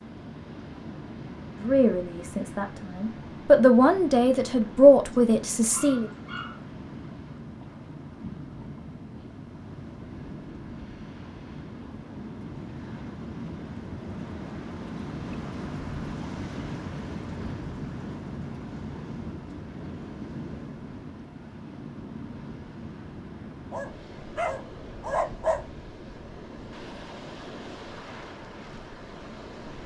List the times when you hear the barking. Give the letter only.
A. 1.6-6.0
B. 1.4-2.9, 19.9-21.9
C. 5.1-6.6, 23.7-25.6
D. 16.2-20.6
C.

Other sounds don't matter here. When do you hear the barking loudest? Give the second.
25 s.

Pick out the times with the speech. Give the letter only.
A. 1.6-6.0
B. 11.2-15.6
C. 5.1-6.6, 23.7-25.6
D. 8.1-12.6
A.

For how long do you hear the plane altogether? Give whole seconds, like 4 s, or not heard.
not heard.